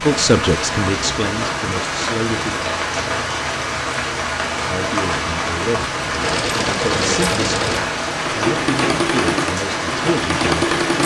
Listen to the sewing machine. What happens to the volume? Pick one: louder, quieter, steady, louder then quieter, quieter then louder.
steady.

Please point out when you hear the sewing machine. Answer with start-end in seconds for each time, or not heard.
6.0-11.0.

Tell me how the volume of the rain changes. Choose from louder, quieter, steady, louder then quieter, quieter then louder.
steady.